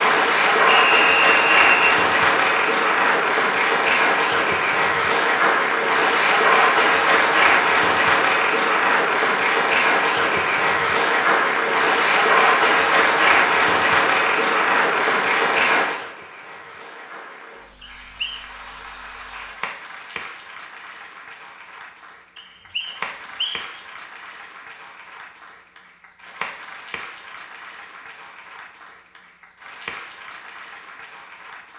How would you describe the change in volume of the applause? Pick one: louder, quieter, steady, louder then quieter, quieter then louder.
quieter.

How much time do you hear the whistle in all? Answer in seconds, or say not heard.
3 s.